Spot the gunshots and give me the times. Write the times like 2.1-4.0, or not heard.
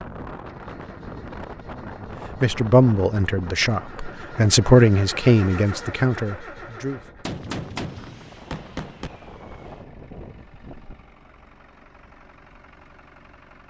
7.2-9.1.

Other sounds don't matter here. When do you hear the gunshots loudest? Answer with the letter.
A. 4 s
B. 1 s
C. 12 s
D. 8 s
D.